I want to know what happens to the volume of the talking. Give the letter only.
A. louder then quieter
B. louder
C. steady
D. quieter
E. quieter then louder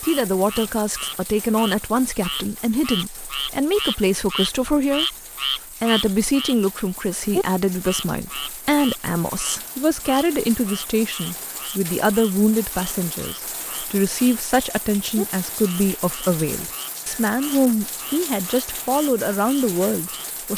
C.